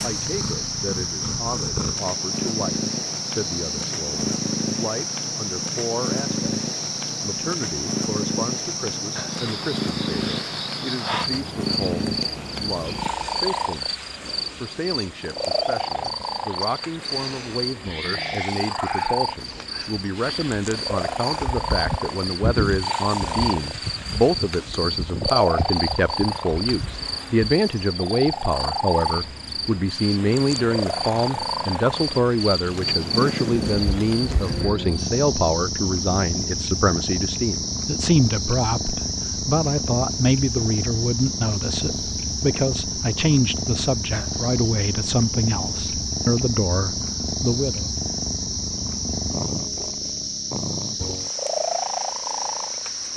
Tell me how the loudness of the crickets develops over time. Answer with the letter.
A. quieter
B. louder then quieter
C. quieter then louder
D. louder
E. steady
E.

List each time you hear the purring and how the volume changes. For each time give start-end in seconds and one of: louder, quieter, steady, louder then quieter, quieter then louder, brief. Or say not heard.
0.0-53.1 steady.